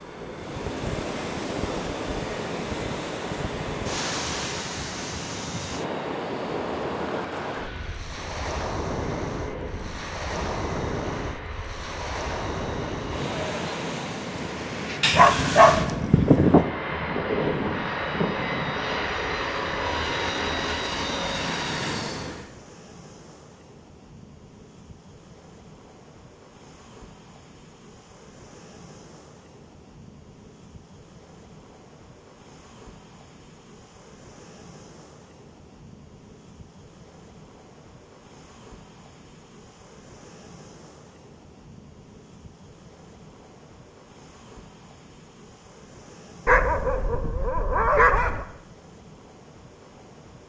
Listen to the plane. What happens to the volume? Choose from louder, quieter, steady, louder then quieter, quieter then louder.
louder.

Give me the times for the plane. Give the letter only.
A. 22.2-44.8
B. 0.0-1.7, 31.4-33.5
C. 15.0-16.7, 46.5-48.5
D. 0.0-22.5
D.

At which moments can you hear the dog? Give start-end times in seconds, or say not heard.
15.0-16.7, 46.5-48.5.